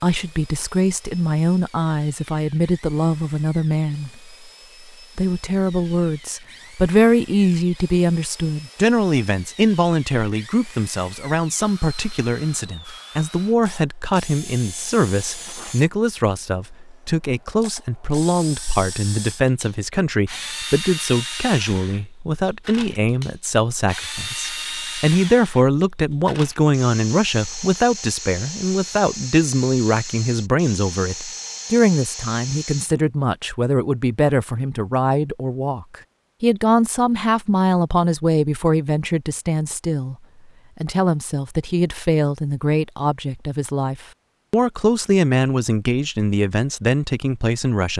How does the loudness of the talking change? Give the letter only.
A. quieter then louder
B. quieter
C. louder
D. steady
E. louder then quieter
D.